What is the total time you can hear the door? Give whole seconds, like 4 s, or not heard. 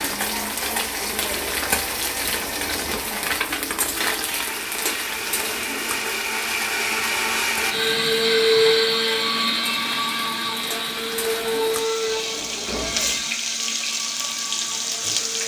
2 s.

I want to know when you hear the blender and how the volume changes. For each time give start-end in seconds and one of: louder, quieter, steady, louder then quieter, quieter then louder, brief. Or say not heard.
0.0-15.4 louder then quieter.